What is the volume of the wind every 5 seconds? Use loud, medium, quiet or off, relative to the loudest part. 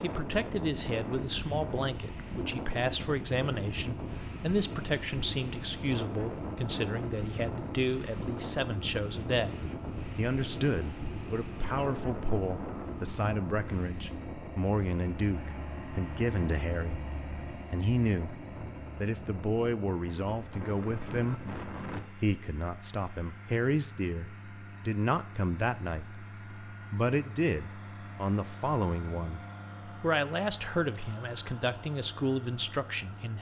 loud, loud, loud, medium, loud, off, off.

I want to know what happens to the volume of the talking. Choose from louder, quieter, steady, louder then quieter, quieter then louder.
steady.